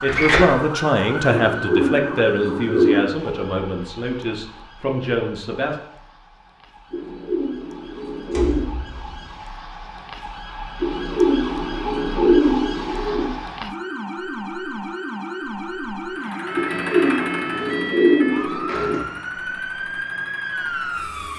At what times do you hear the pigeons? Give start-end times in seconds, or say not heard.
1.3-3.1, 6.9-8.7, 10.8-13.3, 16.6-19.0.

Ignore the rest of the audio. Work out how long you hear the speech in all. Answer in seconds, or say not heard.
6 s.